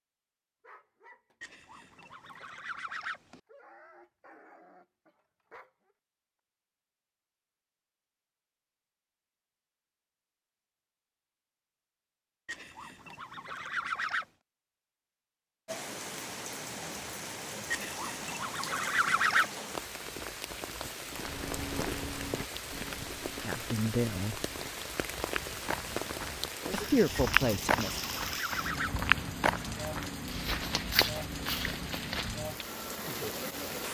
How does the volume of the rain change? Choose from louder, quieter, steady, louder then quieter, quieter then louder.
steady.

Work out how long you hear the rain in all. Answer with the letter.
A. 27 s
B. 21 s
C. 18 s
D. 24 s
C.